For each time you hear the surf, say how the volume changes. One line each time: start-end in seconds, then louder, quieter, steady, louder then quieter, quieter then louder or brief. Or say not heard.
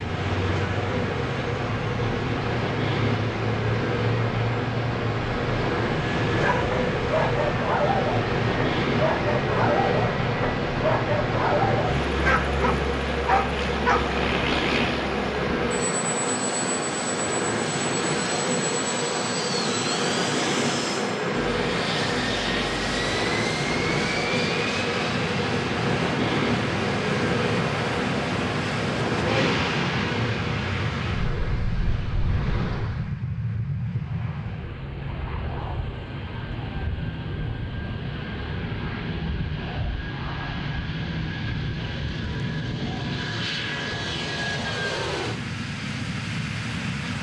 0.0-33.1 steady.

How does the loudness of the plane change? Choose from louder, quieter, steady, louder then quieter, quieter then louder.
steady.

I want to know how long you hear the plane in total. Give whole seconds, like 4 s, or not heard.
47 s.